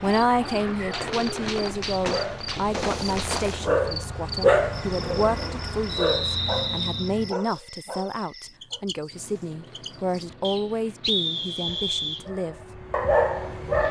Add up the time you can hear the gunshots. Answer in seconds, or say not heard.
3 s.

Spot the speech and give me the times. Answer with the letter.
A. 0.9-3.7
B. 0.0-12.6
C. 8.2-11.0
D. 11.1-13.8
B.